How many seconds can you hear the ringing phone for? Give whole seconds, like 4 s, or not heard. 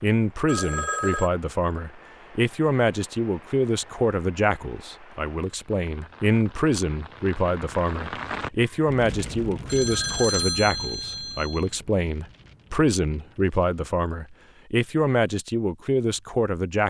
3 s.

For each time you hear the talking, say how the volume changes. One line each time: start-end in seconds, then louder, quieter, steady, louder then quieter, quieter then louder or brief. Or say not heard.
0.0-16.8 steady.